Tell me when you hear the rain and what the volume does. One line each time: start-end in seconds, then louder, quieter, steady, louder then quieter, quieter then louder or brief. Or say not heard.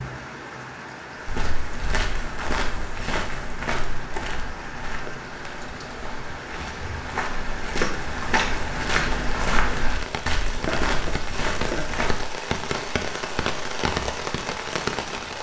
0.0-15.3 louder.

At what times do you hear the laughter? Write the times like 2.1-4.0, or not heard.
10.5-12.0.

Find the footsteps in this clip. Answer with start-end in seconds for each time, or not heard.
1.2-12.2.